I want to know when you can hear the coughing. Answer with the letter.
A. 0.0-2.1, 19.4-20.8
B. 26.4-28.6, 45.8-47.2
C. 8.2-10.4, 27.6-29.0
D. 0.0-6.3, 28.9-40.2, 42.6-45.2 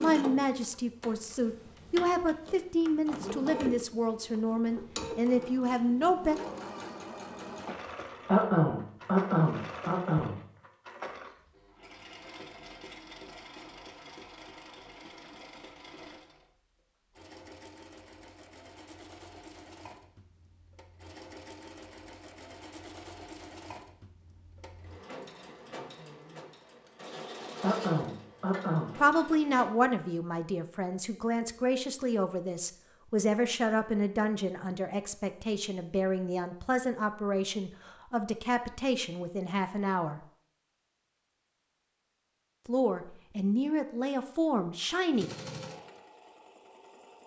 C.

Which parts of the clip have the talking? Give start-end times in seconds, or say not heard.
0.0-6.3, 28.9-40.2, 42.6-45.2.